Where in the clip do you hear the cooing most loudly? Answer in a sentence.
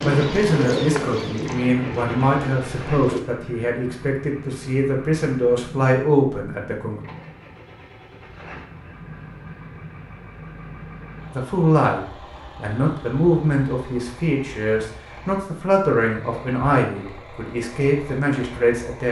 The volume of the cooing peaks at 1 second.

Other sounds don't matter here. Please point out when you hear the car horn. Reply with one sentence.
You can't hear the car horn here.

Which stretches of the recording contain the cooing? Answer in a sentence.
The cooing can be heard from 0.0 to 3.2 s.